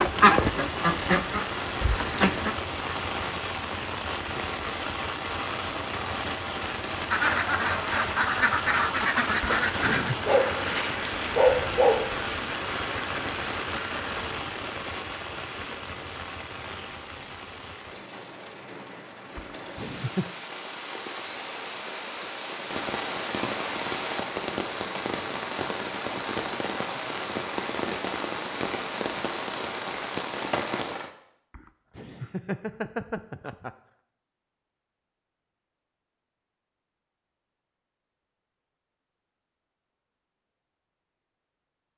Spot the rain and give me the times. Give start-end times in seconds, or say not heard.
0.0-31.1.